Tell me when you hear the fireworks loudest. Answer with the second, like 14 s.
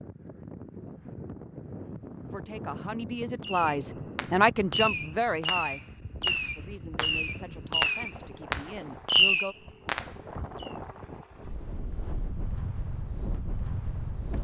9 s.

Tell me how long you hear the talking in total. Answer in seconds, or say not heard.
7 s.